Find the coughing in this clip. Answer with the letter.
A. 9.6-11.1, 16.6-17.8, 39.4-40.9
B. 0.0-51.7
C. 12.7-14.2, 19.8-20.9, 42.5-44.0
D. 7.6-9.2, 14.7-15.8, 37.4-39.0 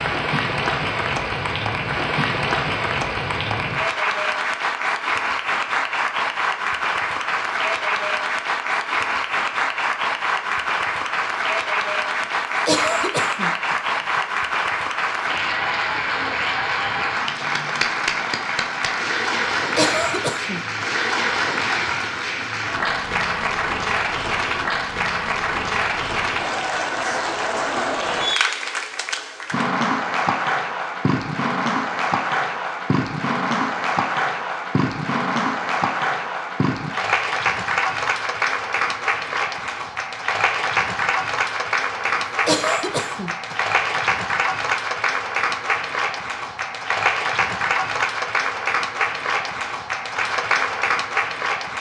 C.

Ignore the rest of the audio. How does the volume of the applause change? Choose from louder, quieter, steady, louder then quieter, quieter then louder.
steady.